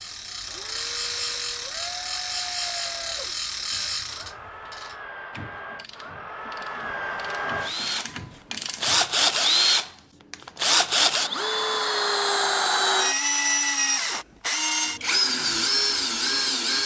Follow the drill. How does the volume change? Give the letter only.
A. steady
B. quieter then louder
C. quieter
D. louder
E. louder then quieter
D.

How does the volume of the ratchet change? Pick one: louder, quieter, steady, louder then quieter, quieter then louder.
quieter then louder.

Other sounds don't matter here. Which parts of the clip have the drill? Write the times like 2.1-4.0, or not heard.
0.0-16.8.